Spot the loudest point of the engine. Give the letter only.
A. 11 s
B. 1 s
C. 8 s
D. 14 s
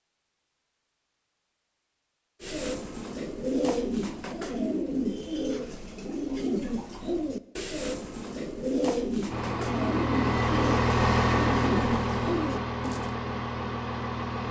A.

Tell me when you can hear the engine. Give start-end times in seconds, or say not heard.
9.3-14.4.